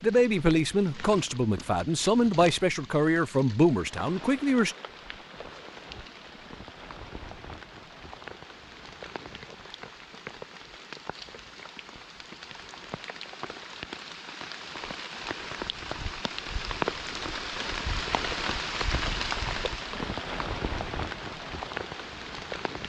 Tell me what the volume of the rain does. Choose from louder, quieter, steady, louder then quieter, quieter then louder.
louder.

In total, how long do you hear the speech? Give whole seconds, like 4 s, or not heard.
5 s.